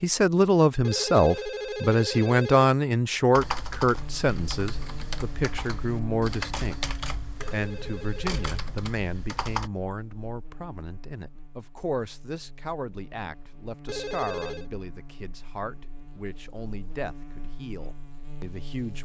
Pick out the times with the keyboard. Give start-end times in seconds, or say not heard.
3.4-9.7.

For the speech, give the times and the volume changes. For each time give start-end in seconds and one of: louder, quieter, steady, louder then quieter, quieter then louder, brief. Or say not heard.
0.0-19.0 quieter.